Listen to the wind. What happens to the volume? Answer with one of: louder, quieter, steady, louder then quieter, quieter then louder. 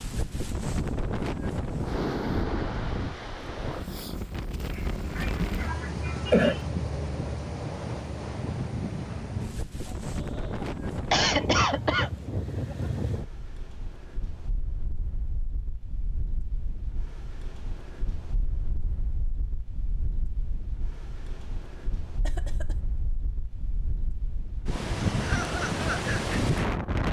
quieter then louder.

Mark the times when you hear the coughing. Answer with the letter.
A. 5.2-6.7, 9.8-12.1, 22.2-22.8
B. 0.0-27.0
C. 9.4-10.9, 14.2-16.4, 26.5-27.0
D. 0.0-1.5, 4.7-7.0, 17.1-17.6
A.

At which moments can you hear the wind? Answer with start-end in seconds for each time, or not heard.
0.0-27.0.